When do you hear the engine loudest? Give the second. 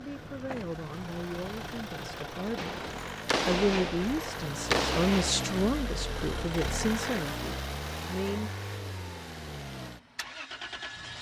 7 s.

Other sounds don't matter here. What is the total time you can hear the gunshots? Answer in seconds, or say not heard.
3 s.